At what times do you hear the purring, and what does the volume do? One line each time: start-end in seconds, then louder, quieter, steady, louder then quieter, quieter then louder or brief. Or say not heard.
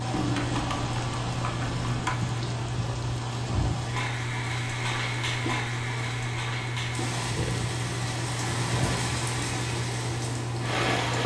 0.0-11.2 steady.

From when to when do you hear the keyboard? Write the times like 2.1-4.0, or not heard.
0.1-2.1.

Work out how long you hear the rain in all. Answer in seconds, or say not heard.
11 s.